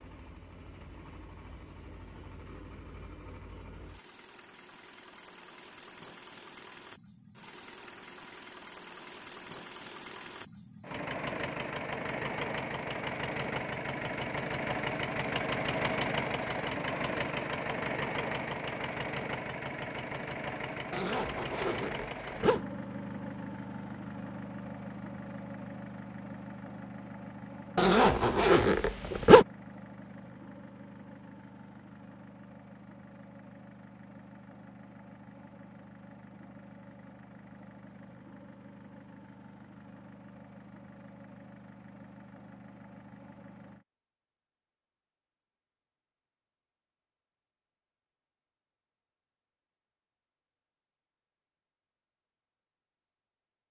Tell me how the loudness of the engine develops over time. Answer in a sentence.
The volume of the engine goes up, then down.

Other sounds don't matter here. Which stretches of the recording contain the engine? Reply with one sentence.
You can hear the engine from 0.0 to 43.9 s.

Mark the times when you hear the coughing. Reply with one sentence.
The coughing can't be heard in this clip.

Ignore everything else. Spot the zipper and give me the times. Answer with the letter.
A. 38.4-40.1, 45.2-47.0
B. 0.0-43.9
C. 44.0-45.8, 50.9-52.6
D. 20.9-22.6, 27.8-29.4
D.